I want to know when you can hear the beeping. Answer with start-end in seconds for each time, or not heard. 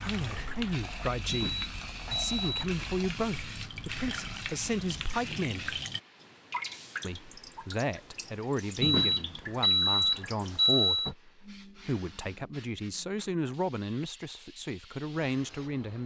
1.3-2.6, 8.8-11.2.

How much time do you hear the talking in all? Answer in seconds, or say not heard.
15 s.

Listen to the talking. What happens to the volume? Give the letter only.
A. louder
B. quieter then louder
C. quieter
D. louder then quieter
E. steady
E.